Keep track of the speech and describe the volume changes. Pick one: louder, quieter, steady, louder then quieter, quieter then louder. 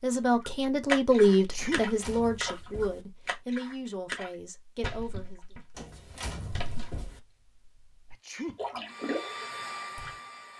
quieter.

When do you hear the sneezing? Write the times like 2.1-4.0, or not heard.
1.4-1.9, 8.1-8.6.